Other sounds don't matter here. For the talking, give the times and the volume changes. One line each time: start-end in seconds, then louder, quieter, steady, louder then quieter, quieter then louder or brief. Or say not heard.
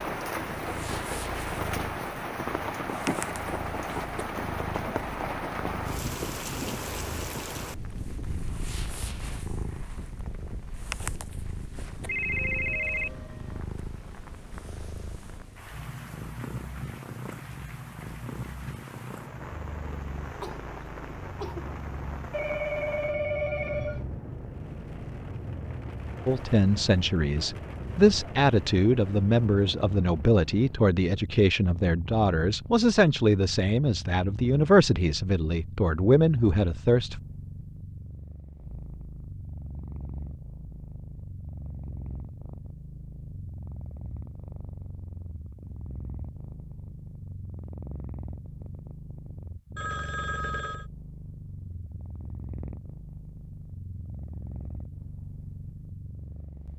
26.2-37.2 steady.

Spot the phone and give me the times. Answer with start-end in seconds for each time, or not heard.
12.1-13.6, 22.3-24.1, 49.8-50.9.